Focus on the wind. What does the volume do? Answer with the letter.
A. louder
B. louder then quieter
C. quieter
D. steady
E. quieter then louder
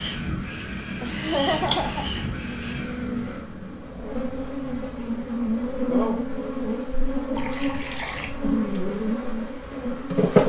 C.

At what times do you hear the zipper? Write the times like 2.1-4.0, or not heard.
not heard.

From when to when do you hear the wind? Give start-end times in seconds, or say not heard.
0.0-10.2.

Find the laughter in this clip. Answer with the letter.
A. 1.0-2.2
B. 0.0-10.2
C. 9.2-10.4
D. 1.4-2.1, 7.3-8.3
A.